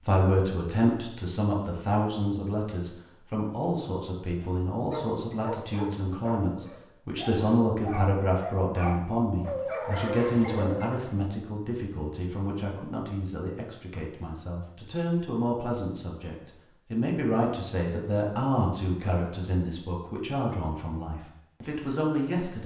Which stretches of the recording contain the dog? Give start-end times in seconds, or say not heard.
4.4-11.1.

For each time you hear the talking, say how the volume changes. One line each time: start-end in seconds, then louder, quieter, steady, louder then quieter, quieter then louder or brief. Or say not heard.
0.1-22.6 steady.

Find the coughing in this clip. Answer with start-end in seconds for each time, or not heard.
not heard.